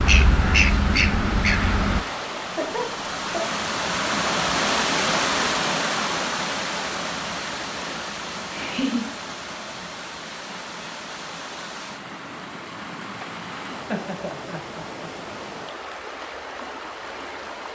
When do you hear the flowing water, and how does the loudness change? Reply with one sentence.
You can hear the flowing water from 0.0 to 17.6 s, getting louder then quieter.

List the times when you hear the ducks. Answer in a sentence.
The ducks can be heard from 0.0 to 2.0 s.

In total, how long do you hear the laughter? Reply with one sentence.
The laughter can be heard for 3 seconds in total.